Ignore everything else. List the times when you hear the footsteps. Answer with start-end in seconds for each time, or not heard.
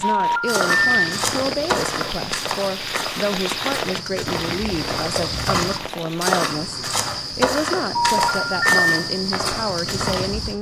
0.4-10.5.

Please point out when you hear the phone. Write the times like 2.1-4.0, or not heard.
0.0-1.0, 7.9-8.8.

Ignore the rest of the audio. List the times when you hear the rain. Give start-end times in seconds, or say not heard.
0.0-6.4.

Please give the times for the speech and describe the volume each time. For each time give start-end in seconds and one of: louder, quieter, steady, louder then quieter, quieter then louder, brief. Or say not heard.
0.0-10.5 steady.